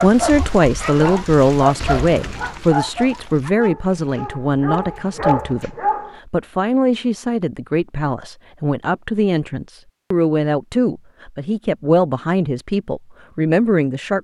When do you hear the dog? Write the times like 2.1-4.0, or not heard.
0.0-6.2.